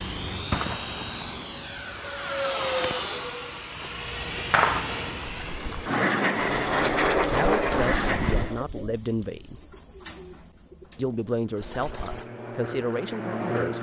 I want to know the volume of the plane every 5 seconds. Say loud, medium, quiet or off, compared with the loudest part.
loud, loud, medium.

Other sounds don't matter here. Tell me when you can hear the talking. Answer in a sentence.
The talking can be heard from 7.2 to 9.6 s and from 10.9 to 13.7 s.